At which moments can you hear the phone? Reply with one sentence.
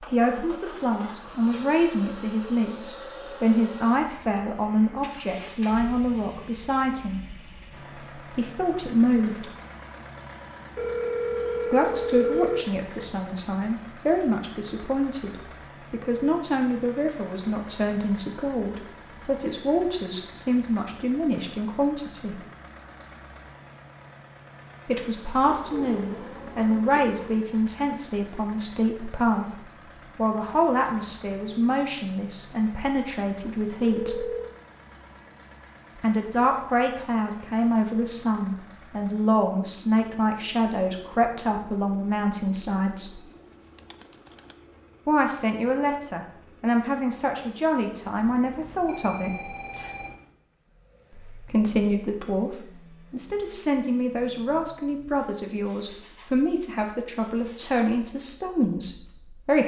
You can hear the phone from 10.8 to 13.1 s, from 33.5 to 34.5 s and from 48.2 to 50.2 s.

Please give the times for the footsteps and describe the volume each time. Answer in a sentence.
You can't hear the footsteps here.